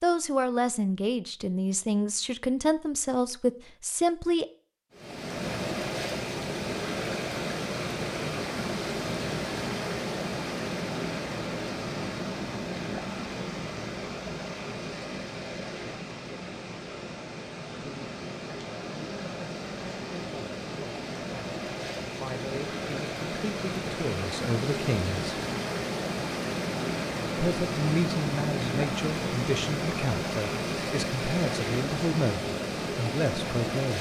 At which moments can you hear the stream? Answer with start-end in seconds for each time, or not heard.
4.9-33.9.